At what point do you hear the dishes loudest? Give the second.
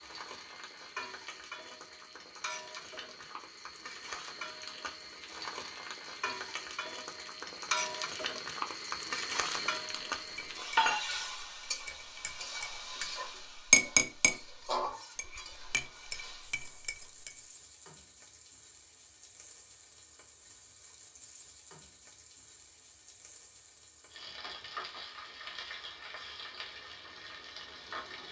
14 s.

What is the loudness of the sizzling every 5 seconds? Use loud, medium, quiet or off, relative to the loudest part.
medium, loud, loud, quiet, quiet, medium.